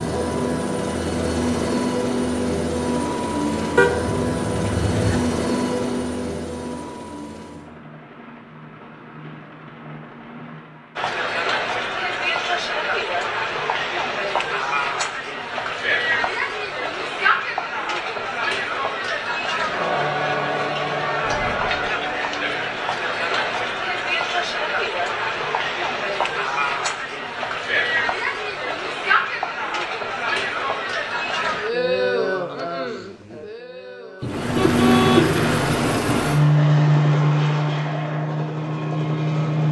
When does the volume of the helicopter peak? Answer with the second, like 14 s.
37 s.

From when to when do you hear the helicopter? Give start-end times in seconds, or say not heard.
0.0-11.1, 34.2-39.6.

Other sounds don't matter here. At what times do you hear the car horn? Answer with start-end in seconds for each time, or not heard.
3.8-5.2, 21.2-21.8, 34.2-36.2.